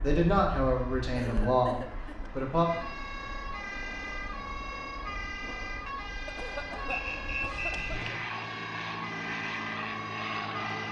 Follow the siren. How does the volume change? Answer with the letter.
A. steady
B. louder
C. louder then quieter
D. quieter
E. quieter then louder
B.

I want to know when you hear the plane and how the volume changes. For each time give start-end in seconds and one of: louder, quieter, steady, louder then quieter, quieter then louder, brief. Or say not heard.
0.0-10.8 louder.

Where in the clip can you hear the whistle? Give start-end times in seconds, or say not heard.
6.8-7.9.